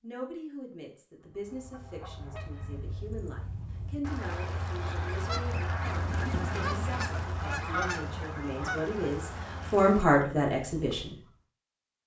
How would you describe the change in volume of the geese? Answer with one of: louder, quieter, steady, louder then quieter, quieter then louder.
louder then quieter.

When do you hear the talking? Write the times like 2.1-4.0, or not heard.
0.0-11.2.